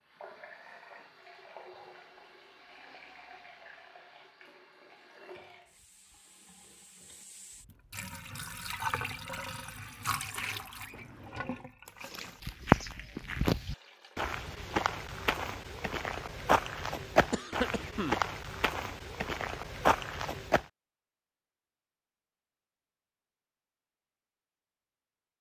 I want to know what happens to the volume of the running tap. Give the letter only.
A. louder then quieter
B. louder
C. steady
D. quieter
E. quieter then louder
A.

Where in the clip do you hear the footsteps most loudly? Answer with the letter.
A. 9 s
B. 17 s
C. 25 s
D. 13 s
D.